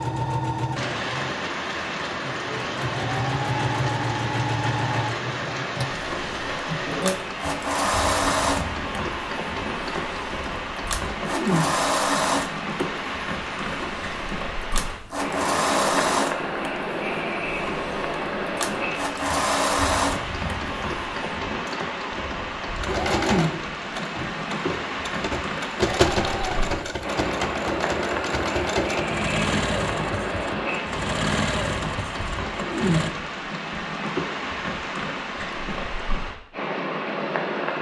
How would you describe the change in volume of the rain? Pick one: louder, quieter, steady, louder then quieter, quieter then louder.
steady.